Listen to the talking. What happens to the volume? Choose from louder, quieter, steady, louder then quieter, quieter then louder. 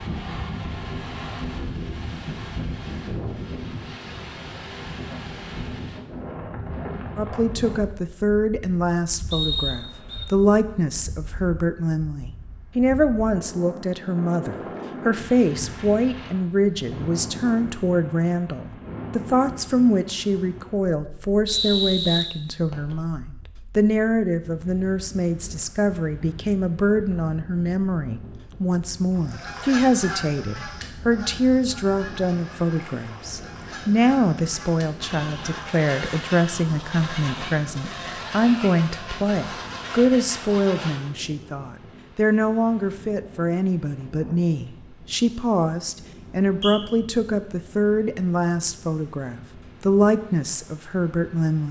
steady.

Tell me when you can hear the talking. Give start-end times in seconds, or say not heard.
7.2-51.6.